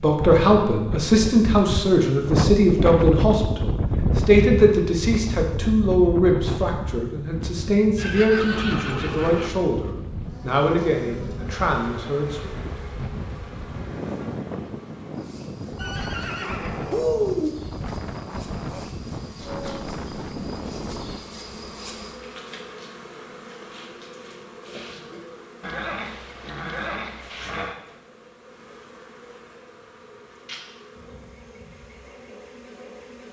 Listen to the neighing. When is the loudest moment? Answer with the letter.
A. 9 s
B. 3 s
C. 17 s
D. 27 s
C.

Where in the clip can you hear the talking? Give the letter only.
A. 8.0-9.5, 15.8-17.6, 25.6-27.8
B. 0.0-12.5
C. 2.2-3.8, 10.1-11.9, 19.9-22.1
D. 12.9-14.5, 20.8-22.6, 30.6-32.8
B.